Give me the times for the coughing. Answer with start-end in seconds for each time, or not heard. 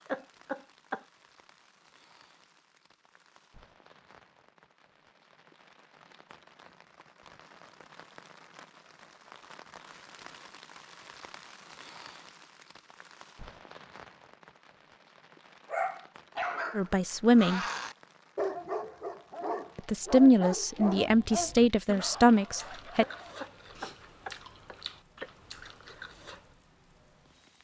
0.1-1.1, 22.9-25.3.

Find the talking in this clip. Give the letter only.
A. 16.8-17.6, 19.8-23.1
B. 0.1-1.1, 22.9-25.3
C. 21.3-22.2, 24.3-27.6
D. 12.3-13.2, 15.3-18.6
A.